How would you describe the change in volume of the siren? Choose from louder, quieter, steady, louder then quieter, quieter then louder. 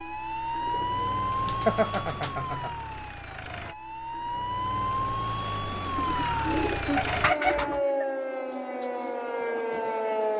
quieter then louder.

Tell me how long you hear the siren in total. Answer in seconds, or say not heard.
10 s.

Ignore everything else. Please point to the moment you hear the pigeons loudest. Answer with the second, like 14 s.
7 s.